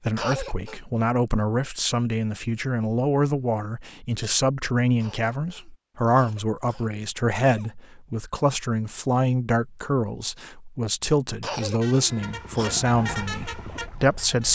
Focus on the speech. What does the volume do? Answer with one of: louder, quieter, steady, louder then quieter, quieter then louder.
steady.